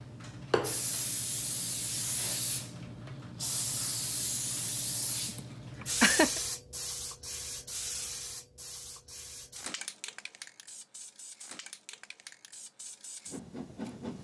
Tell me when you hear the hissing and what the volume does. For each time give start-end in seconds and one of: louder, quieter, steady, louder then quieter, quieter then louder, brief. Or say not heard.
0.0-14.1 quieter.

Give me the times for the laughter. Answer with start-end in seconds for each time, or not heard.
5.2-6.4.